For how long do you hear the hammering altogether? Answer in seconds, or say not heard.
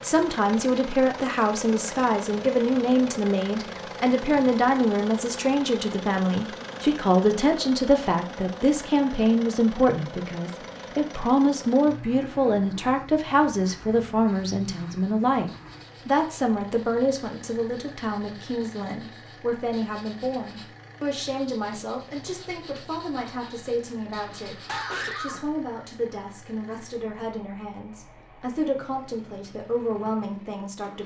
not heard.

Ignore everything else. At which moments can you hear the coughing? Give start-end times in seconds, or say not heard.
24.2-25.5.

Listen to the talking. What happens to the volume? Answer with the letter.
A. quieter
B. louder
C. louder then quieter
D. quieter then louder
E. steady
A.